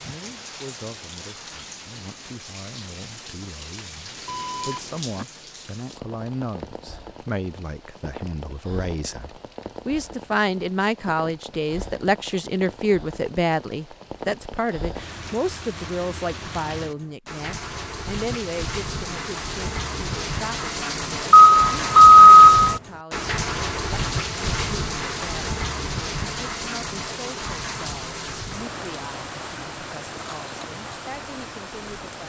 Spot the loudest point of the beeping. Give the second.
22 s.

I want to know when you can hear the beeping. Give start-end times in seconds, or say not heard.
4.2-5.2, 21.3-22.8.